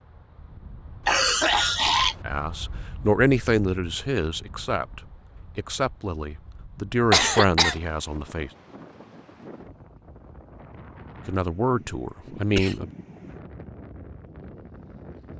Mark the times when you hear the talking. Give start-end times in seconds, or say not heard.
2.2-8.5, 11.2-12.9.